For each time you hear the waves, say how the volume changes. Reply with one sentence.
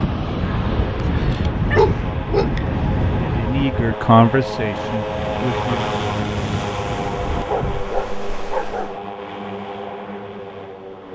The waves can be heard from 0.0 to 8.9 s, getting quieter.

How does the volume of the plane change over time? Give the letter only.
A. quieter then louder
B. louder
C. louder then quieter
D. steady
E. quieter
C.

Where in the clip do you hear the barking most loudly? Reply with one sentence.
The volume of the barking peaks at 2 seconds.